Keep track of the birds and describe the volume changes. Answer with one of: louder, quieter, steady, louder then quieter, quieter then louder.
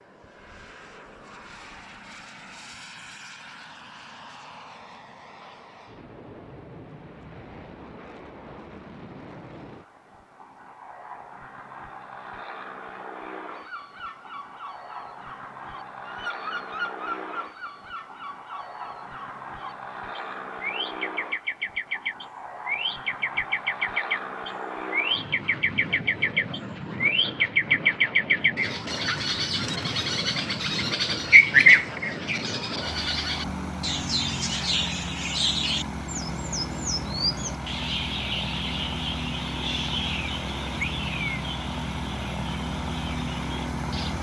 louder then quieter.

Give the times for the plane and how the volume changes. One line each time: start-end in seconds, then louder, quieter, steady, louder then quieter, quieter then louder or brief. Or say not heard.
0.0-44.1 louder.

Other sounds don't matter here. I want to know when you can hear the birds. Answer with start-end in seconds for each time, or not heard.
13.4-44.1.